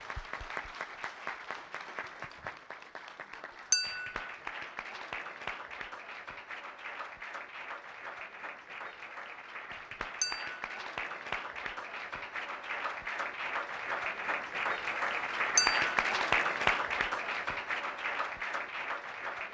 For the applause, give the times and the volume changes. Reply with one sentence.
You can hear the applause from 0.0 to 19.5 s, getting louder.